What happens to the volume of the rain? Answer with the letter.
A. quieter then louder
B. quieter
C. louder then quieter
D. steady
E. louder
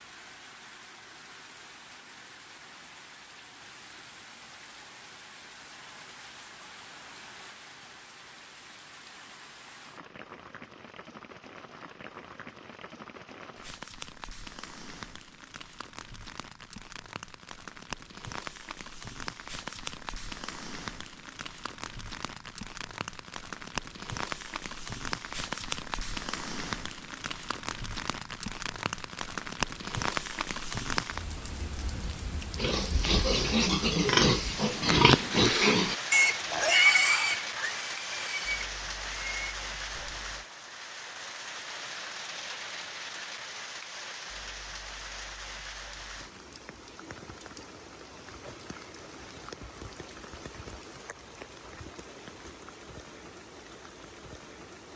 C.